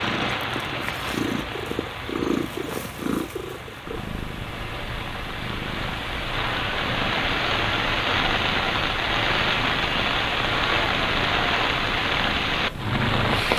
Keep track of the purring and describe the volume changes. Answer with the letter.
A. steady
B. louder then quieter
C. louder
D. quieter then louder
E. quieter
E.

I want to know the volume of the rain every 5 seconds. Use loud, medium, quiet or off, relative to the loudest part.
medium, loud, loud.